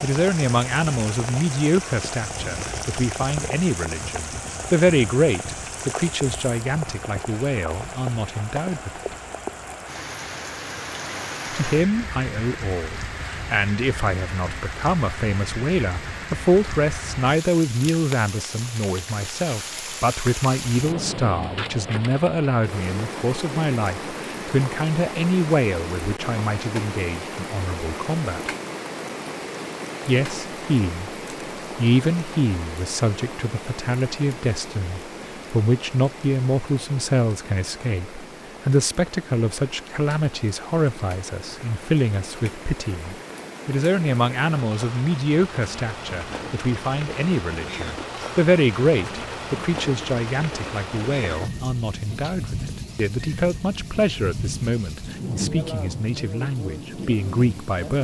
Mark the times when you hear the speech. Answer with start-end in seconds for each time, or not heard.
0.0-9.2, 11.5-28.5, 30.1-31.1, 31.8-58.0.